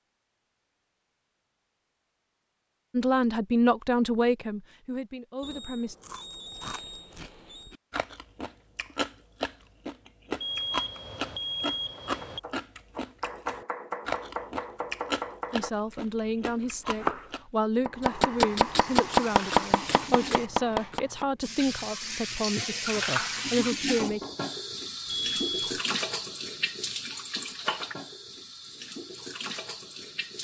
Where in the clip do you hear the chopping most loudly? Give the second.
19 s.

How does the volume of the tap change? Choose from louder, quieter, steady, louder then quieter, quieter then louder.
louder then quieter.